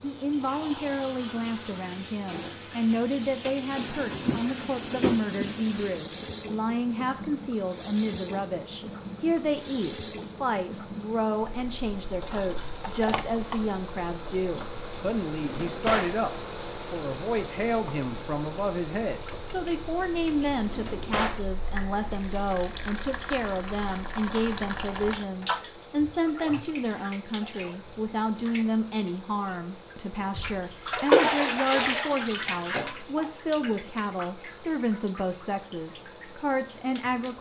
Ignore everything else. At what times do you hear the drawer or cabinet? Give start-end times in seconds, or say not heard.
15.4-16.2, 20.6-21.4.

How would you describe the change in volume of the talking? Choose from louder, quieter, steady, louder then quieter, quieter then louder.
steady.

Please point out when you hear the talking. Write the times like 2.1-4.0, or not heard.
0.0-37.3.